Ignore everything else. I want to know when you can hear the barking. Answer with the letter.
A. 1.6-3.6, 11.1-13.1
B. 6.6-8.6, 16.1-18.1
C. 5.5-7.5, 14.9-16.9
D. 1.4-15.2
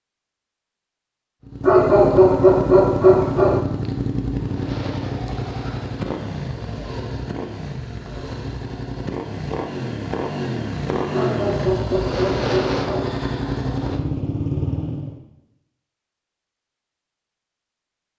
A.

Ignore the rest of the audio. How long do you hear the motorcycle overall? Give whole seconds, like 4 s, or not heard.
14 s.